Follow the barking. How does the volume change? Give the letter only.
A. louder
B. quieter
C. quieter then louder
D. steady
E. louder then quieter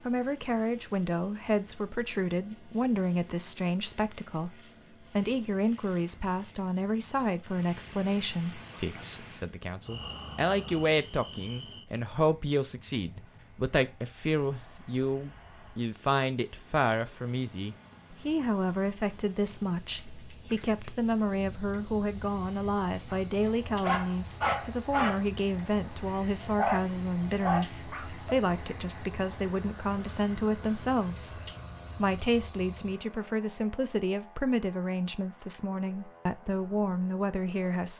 C.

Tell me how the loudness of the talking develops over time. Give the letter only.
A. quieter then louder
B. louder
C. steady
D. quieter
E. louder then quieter
C.